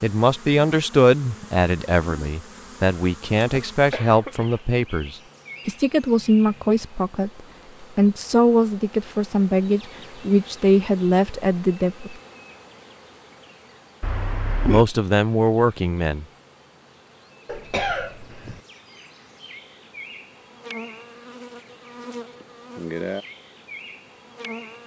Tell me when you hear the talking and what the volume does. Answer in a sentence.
The talking can be heard from 0.0 to 12.2 s, at a steady volume; and briefly from 14.7 to 16.2 s.